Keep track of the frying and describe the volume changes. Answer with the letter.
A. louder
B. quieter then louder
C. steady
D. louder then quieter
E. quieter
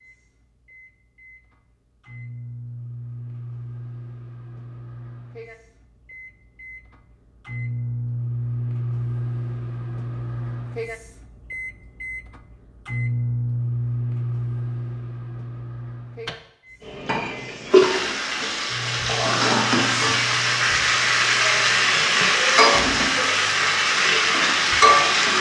C.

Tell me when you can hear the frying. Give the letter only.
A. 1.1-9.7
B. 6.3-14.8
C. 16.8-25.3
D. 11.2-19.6
C.